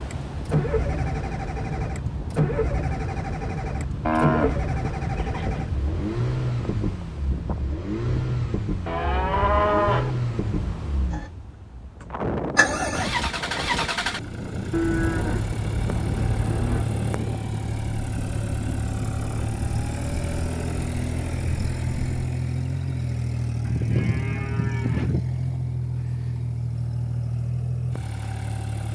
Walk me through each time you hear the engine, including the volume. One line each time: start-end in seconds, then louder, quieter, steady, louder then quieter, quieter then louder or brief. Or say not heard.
0.0-28.8 steady.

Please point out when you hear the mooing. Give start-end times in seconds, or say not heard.
4.0-5.7, 8.8-10.2, 14.7-16.9, 23.6-25.2.